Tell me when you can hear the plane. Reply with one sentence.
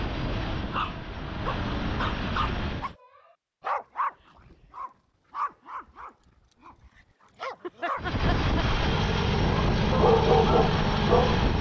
The plane can be heard from 0.0 to 3.0 s and from 8.0 to 11.5 s.